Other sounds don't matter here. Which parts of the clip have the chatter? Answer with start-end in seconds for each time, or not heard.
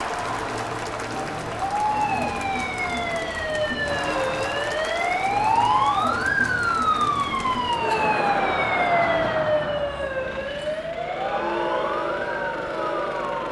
0.0-13.4.